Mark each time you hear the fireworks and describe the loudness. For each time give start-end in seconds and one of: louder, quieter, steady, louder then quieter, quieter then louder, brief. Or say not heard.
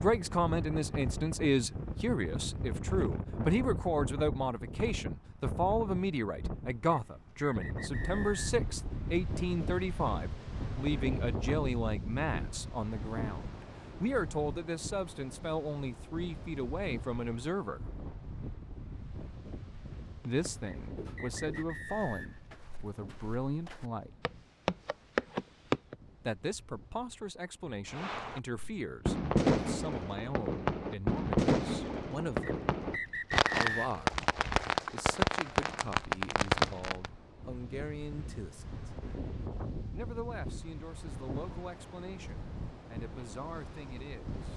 27.9-37.1 quieter then louder.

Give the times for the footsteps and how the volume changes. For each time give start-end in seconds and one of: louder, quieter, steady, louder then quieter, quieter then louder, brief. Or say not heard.
20.2-25.9 quieter then louder.